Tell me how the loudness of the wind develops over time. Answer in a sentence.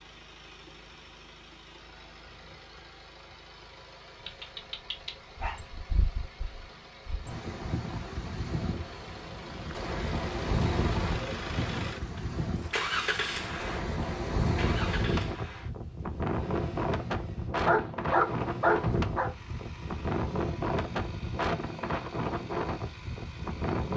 The loudness of the wind goes up.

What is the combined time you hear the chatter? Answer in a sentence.
You can't hear the chatter here.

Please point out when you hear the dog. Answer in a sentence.
You can hear the dog from 4.2 to 5.6 s and from 17.6 to 19.3 s.